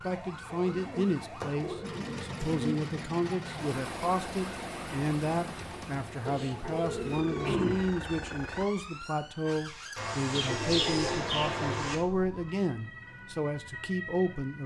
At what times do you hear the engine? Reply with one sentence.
The engine can be heard from 1.8 to 8.7 s.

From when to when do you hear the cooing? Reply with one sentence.
You can hear the cooing from 0.5 to 2.9 s, from 6.2 to 7.8 s and from 9.9 to 11.9 s.